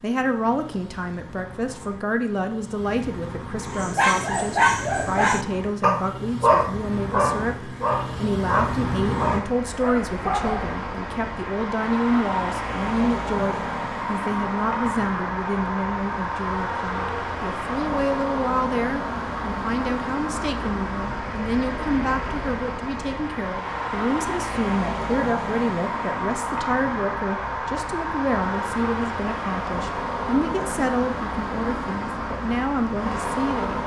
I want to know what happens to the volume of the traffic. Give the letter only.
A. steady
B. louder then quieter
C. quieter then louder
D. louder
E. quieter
D.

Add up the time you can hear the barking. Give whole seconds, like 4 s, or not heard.
7 s.